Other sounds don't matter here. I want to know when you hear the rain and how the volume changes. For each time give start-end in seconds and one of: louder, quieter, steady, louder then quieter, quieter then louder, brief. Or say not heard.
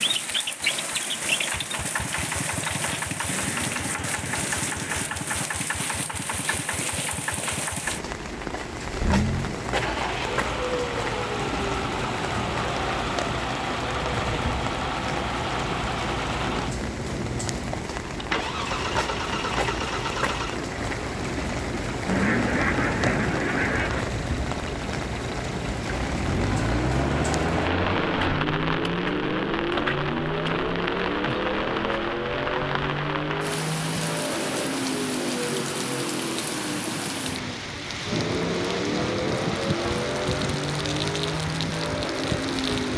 0.0-42.9 steady.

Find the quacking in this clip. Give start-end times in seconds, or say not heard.
3.3-5.2, 22.1-24.1.